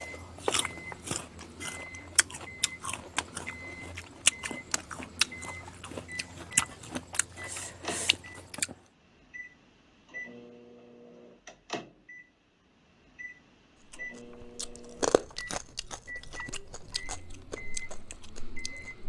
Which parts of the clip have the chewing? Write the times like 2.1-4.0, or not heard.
0.0-8.8, 13.9-19.0.